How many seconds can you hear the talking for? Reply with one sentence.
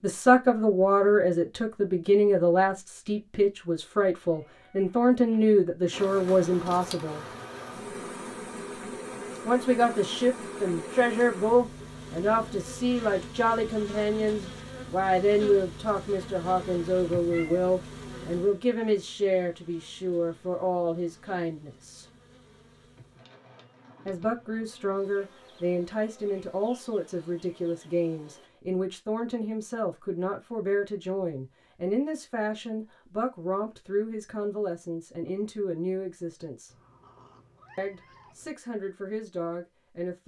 The talking can be heard for 35 seconds in total.